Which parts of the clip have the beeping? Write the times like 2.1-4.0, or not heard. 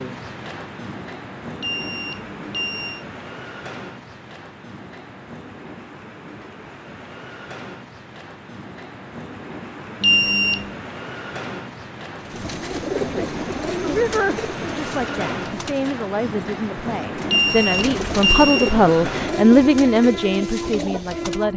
1.6-3.0, 10.0-10.8, 17.2-18.8.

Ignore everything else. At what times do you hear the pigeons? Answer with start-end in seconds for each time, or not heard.
12.2-21.4.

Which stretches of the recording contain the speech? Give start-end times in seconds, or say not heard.
12.9-21.5.